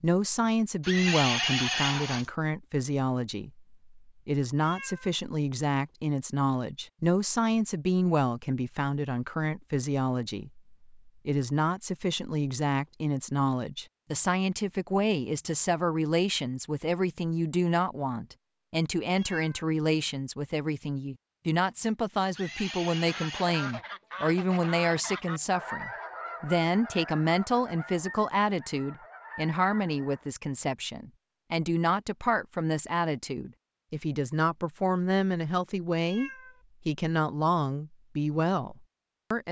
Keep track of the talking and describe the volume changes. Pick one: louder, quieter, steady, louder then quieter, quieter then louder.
steady.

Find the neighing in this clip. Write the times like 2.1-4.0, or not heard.
0.8-2.3, 22.3-23.8.